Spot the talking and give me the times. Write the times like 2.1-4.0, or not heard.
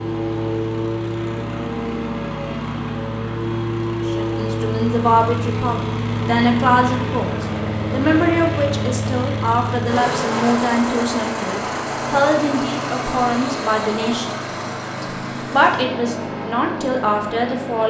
4.0-14.3, 15.0-17.8.